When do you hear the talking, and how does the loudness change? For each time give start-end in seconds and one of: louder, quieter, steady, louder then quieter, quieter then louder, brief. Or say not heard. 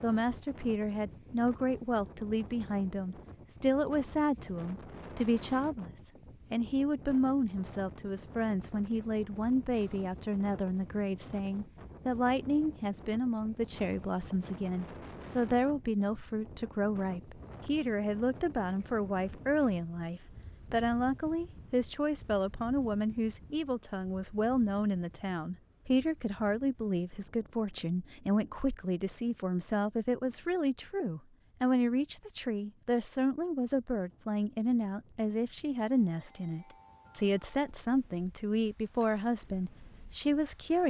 0.0-40.8 steady.